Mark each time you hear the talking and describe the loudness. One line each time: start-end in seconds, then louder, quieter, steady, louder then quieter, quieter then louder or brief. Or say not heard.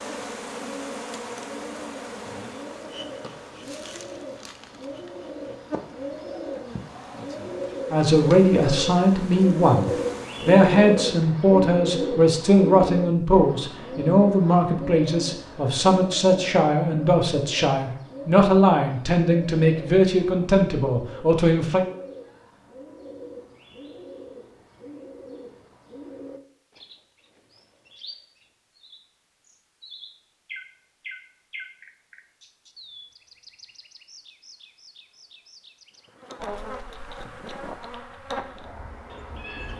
7.9-21.9 steady.